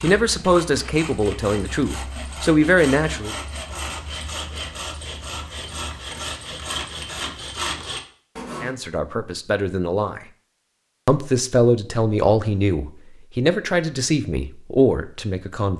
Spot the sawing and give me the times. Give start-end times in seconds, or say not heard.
0.0-8.8.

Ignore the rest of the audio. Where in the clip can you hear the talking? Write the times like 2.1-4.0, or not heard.
0.0-3.4, 8.6-10.2, 11.1-15.7.